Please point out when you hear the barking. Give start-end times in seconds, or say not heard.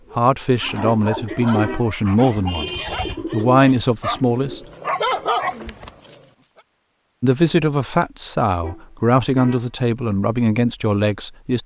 0.6-6.2.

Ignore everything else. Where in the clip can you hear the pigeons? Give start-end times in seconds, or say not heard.
0.0-6.0.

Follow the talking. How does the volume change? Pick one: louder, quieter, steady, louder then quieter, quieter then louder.
steady.